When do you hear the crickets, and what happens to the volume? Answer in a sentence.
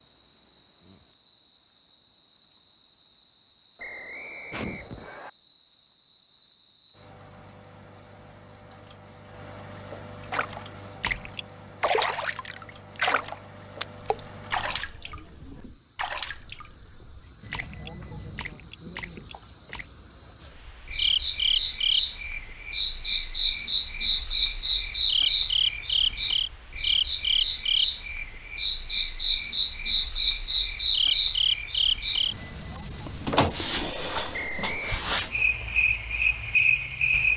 The crickets can be heard from 0.0 to 37.3 s, getting louder.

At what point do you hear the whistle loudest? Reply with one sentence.
The loudest moment of the whistle is at 35 seconds.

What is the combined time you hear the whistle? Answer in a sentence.
The whistle can be heard for 2 seconds in total.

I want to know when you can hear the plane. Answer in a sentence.
The plane can't be heard in this clip.